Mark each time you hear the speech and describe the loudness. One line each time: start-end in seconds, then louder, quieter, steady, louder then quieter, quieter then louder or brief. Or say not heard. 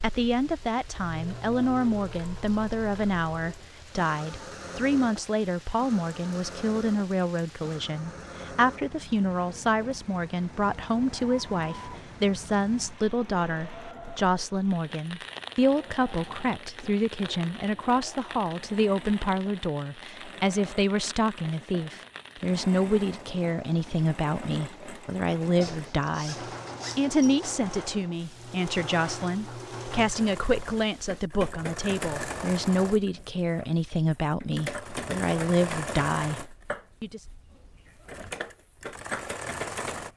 0.0-37.2 steady.